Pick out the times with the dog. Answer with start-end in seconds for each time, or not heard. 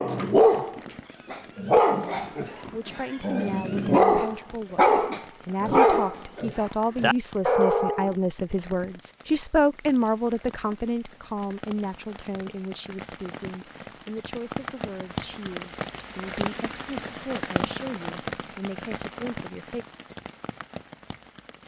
0.0-8.2.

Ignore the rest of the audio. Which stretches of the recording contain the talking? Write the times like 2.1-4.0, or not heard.
2.0-19.9.